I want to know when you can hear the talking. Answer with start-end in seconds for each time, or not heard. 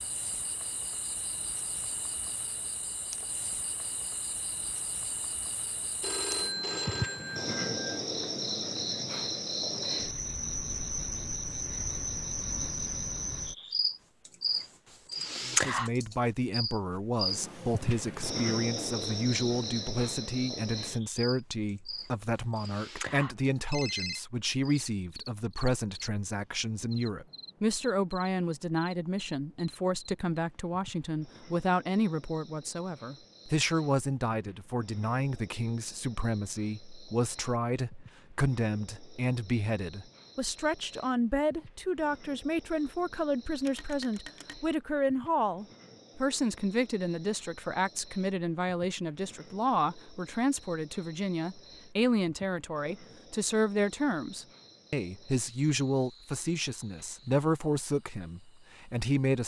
15.4-59.4.